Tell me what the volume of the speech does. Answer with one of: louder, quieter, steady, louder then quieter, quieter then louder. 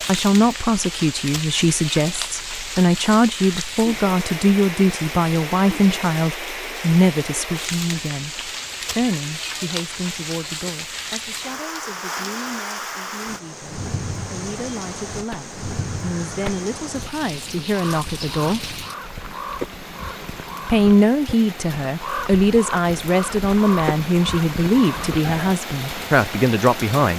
quieter then louder.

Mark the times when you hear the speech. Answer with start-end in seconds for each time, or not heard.
0.1-18.6, 20.6-27.1.